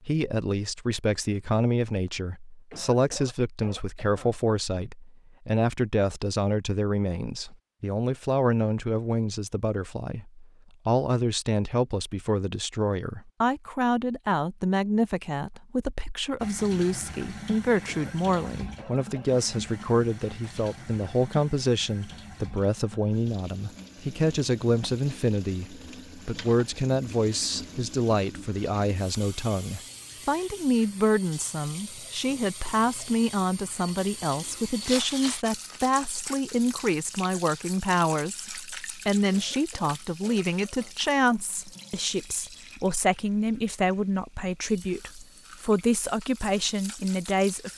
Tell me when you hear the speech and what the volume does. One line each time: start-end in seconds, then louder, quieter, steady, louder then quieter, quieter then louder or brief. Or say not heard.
0.1-47.7 steady.